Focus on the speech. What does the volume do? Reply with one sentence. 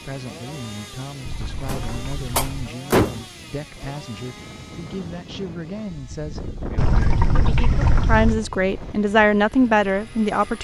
The loudness of the speech goes up.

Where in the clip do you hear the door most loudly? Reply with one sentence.
The volume of the door peaks at 3 seconds.